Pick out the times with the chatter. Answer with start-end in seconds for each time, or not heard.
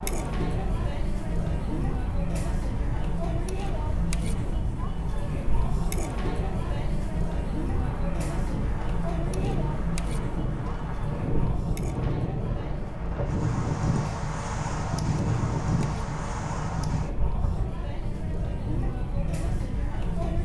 0.0-20.4.